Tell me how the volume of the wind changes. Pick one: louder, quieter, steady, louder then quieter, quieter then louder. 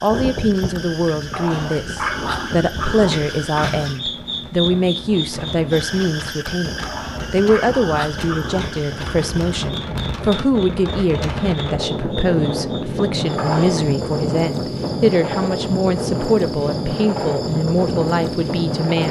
louder.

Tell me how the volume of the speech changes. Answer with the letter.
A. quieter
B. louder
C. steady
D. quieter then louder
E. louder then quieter
C.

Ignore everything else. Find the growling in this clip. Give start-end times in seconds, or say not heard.
1.3-3.9, 6.8-9.2, 13.3-14.0.